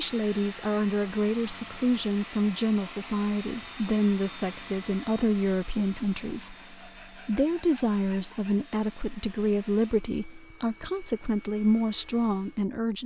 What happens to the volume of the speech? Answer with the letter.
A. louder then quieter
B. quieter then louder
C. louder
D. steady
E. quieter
D.